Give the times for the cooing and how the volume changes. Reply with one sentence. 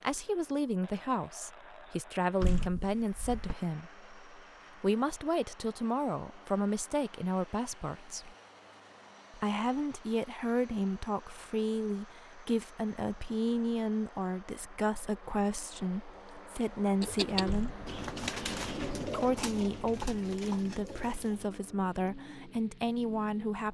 You can hear the cooing from 16.9 to 23.4 s, getting quieter.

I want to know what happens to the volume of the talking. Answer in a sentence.
The loudness of the talking stays about the same.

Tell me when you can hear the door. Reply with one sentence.
You can hear the door from 2.4 to 3.5 s and from 17.4 to 17.9 s.